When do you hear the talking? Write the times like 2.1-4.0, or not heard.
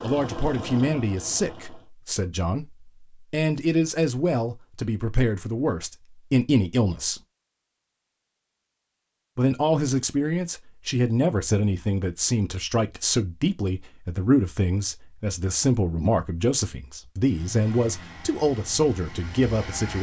0.0-7.2, 9.3-19.9.